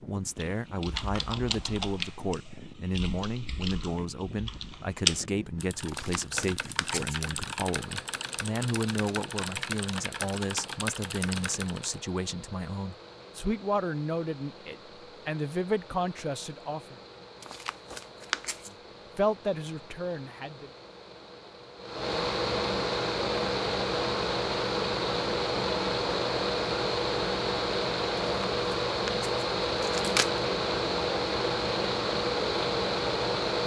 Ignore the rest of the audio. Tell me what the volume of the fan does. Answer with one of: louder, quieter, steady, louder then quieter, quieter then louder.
louder.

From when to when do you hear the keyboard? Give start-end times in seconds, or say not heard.
0.3-12.0.